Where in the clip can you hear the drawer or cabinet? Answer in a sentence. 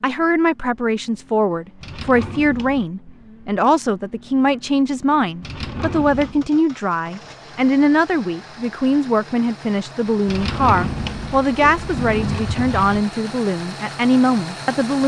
The drawer or cabinet can be heard from 1.8 to 2.9 s, from 5.4 to 6.5 s and from 10.2 to 13.1 s.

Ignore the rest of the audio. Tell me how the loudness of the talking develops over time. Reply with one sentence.
The volume of the talking stays about the same.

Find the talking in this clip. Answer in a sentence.
The talking can be heard from 0.0 to 15.0 s.